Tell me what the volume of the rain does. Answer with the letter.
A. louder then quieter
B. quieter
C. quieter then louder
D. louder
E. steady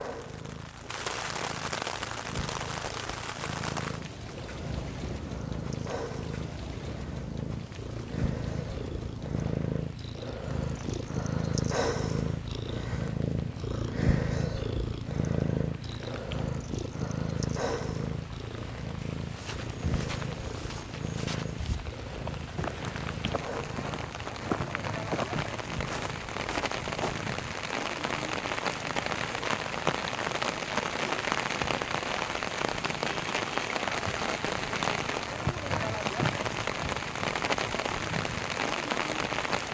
C.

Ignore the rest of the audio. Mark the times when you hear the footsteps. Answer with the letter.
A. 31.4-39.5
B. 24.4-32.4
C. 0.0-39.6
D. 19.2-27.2
D.